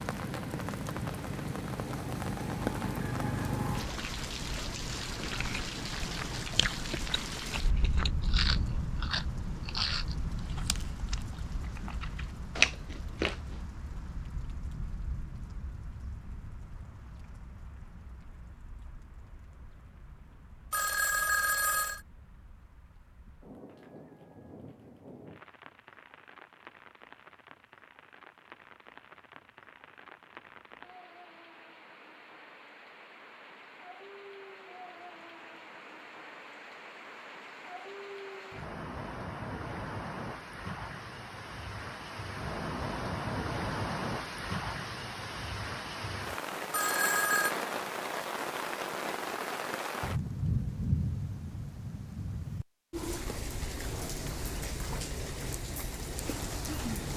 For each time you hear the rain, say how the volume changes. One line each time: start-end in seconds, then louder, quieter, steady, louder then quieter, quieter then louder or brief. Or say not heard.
0.0-57.1 quieter then louder.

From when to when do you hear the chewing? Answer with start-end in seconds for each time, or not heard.
5.2-13.6.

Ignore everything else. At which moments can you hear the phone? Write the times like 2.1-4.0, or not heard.
20.7-22.0, 46.7-47.5.